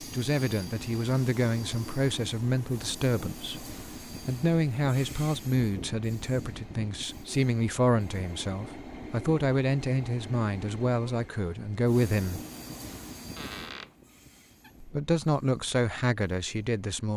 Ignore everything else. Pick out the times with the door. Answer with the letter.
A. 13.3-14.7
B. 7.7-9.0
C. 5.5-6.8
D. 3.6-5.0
A.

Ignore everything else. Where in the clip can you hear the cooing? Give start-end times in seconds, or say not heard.
not heard.